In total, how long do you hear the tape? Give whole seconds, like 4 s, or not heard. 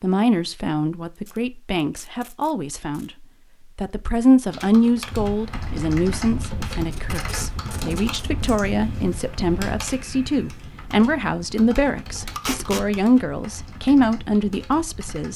4 s.